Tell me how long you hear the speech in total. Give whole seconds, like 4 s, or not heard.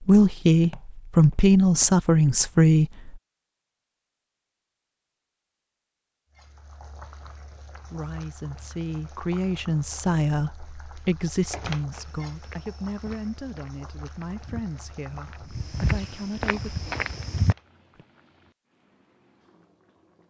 12 s.